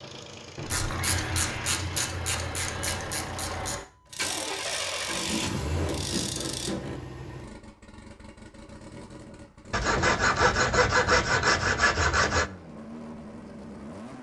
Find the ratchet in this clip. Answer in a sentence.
You can hear the ratchet from 0.7 to 6.7 s.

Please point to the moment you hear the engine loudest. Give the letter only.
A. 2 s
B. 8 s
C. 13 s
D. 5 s
D.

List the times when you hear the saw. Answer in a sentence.
You can hear the saw from 0.6 to 3.0 s, from 5.0 to 7.0 s and from 9.7 to 12.5 s.